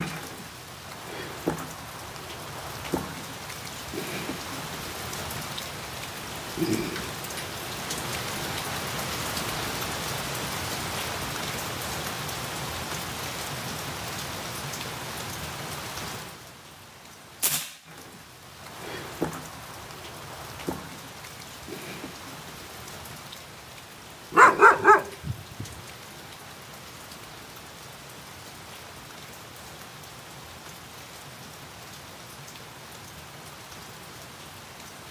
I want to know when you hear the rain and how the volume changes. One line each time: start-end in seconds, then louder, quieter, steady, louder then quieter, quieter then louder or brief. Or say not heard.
0.0-35.0 quieter.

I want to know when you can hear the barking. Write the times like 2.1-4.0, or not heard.
24.4-25.6.